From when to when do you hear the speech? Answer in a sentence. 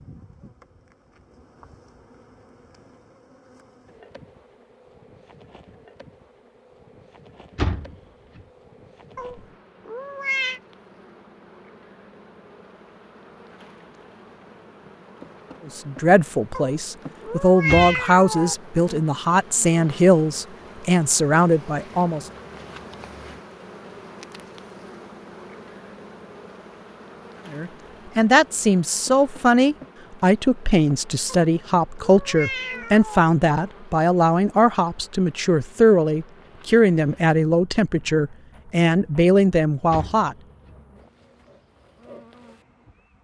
The speech can be heard from 15.7 to 22.2 s and from 27.5 to 40.4 s.